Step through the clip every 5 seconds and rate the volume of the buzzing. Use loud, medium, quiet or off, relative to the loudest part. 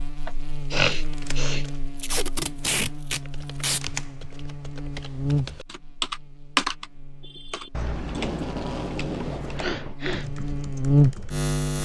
quiet, medium, loud.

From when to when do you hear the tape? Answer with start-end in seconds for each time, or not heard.
1.9-3.8, 8.1-9.6.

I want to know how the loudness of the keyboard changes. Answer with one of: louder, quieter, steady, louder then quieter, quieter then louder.
louder then quieter.